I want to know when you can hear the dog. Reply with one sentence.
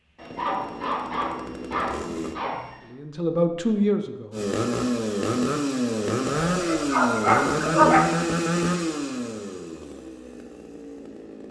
You can hear the dog from 0.1 to 2.8 s and from 6.5 to 8.1 s.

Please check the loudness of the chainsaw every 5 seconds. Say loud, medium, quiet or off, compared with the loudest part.
medium, loud, quiet.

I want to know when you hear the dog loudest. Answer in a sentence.
The loudest moment of the dog is at 8 seconds.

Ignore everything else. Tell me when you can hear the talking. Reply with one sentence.
You can hear the talking from 2.8 to 4.5 s.